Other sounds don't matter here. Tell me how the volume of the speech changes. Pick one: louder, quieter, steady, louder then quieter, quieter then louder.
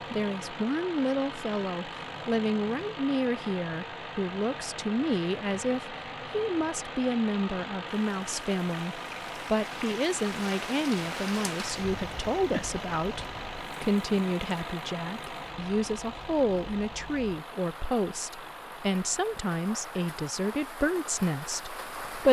steady.